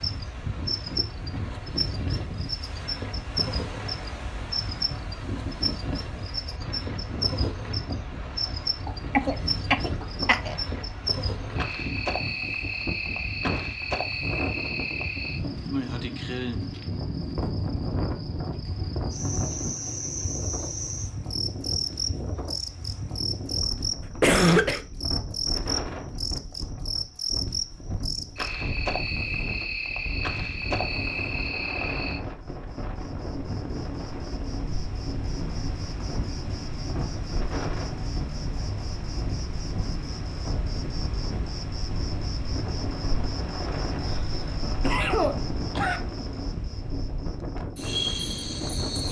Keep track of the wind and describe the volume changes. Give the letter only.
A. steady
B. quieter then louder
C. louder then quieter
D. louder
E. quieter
A.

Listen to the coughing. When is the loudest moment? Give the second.
24 s.